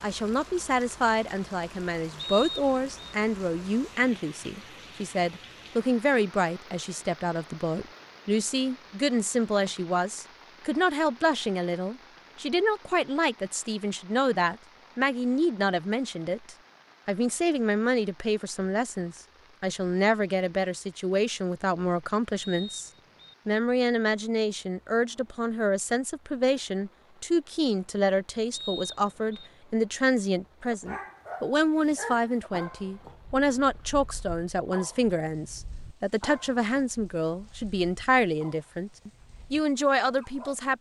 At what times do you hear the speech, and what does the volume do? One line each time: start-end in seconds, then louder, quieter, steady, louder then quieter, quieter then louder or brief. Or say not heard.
0.0-40.7 steady.